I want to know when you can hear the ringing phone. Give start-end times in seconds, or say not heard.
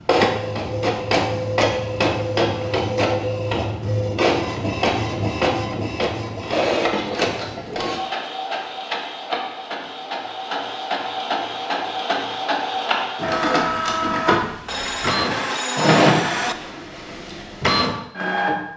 14.7-16.6.